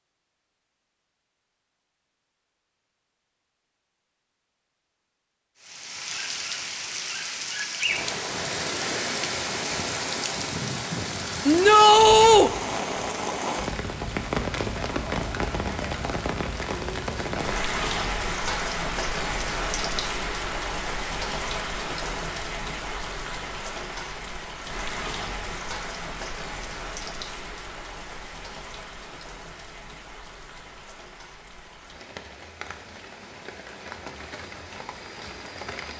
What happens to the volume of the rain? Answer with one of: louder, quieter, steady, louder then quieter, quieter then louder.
quieter.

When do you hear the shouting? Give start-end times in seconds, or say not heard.
11.4-12.5.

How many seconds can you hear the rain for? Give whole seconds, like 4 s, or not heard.
30 s.